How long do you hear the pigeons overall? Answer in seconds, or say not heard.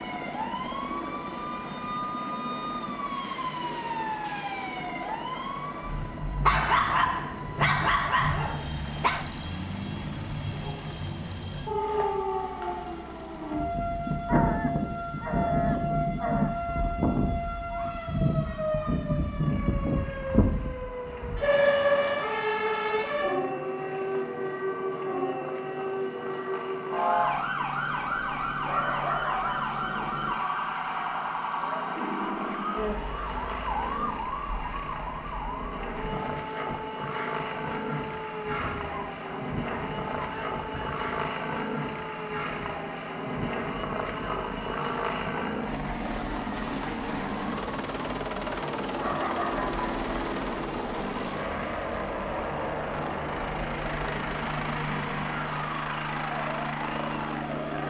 not heard.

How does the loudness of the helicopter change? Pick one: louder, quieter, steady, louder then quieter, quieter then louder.
quieter then louder.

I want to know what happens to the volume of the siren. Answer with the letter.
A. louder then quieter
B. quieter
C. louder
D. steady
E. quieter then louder
A.